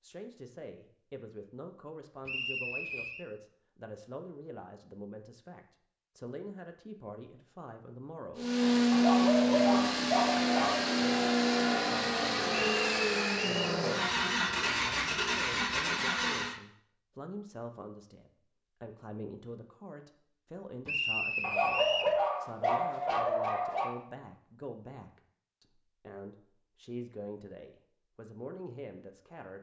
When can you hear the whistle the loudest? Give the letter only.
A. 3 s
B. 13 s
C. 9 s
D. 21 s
D.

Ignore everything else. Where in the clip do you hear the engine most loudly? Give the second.
9 s.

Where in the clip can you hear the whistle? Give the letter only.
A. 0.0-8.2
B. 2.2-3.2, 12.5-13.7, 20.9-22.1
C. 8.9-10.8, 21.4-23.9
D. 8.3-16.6
B.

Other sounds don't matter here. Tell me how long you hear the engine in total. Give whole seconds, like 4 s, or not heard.
8 s.